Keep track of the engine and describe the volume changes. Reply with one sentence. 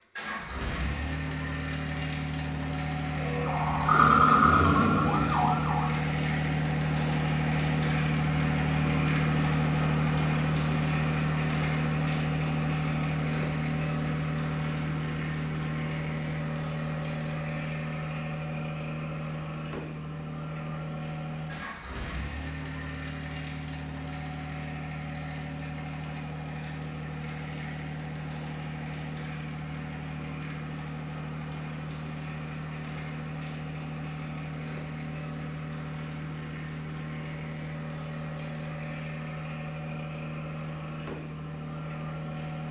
The loudness of the engine goes down.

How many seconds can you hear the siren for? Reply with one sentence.
You can hear the siren for 3 seconds altogether.